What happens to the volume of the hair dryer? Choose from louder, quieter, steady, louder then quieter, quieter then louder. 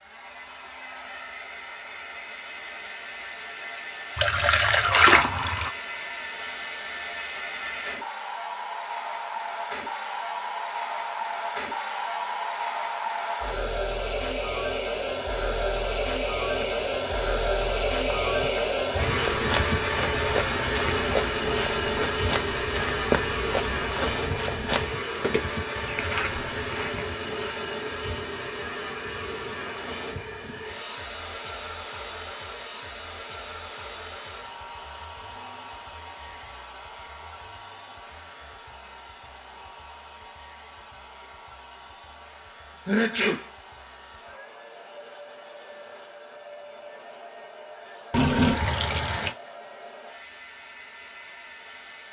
louder then quieter.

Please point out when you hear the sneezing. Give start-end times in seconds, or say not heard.
42.9-43.5.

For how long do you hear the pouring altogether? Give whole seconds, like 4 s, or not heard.
3 s.